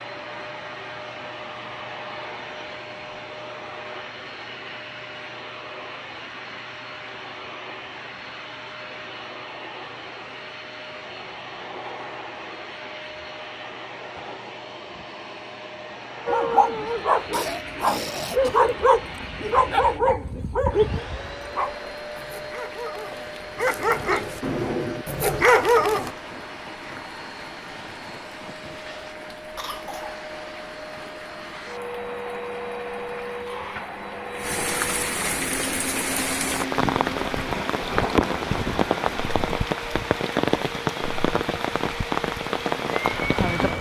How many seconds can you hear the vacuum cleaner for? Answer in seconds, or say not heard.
44 s.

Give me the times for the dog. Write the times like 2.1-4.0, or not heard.
16.2-26.1.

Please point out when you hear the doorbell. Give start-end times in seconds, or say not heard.
not heard.